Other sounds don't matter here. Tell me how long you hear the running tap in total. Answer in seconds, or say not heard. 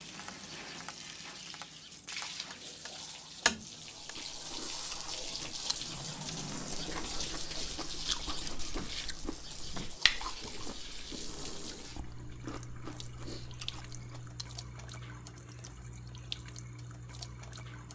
18 s.